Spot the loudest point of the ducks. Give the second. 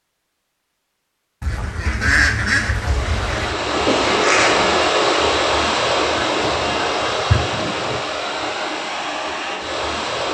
2 s.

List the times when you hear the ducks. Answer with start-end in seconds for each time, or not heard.
1.4-3.5, 6.2-8.0.